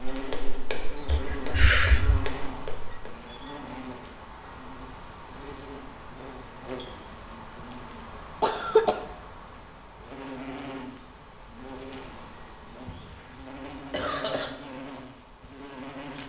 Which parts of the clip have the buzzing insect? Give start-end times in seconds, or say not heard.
0.0-16.2.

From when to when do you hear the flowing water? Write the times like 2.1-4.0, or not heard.
not heard.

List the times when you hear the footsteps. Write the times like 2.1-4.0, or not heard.
0.1-3.1.